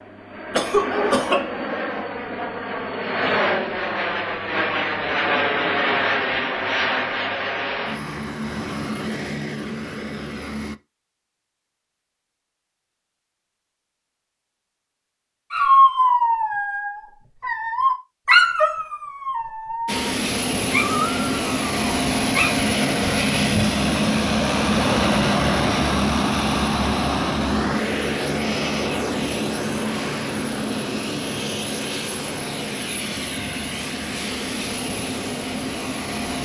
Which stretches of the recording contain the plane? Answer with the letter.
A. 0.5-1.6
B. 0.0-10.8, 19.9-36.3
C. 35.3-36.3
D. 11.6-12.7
B.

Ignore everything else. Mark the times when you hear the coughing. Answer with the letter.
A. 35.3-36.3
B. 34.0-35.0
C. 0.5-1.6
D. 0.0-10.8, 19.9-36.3
C.